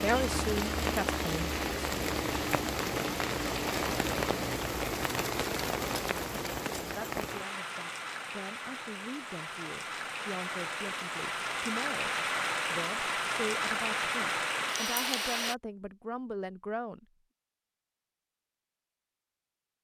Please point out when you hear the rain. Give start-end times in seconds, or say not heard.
0.0-15.6.